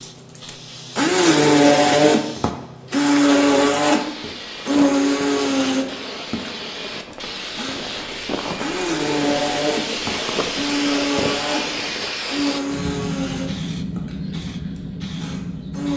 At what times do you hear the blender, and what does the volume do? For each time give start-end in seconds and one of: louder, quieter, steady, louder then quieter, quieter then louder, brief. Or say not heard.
0.0-15.9 quieter.